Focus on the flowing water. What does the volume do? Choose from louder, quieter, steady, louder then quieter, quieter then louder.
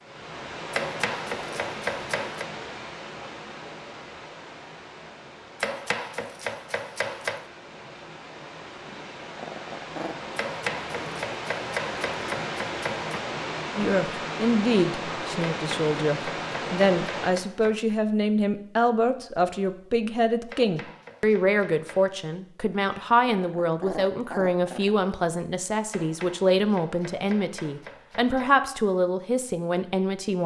quieter then louder.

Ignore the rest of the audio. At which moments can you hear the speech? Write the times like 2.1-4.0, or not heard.
13.8-30.4.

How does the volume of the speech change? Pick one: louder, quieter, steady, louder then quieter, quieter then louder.
steady.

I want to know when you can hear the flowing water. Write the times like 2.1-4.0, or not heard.
0.0-17.4.